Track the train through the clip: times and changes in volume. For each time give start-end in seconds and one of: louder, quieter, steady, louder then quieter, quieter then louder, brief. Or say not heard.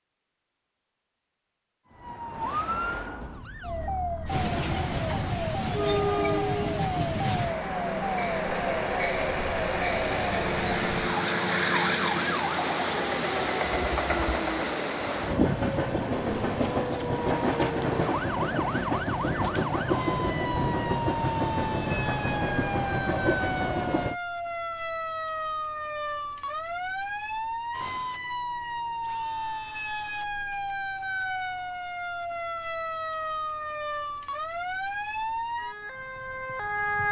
4.2-24.1 steady.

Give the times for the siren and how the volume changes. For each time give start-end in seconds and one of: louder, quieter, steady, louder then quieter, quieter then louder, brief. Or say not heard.
1.9-37.0 steady.